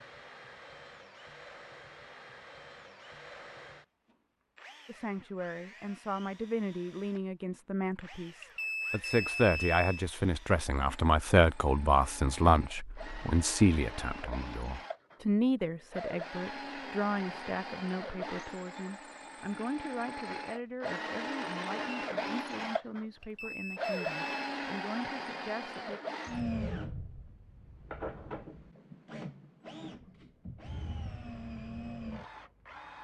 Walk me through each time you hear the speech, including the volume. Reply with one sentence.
You can hear the speech from 4.8 to 26.0 s, getting louder then quieter.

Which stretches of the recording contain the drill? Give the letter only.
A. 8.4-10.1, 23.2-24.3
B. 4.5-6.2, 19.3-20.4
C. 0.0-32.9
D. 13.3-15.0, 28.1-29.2
C.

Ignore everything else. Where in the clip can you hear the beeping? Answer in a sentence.
The beeping can be heard from 8.4 to 10.1 s and from 23.2 to 24.3 s.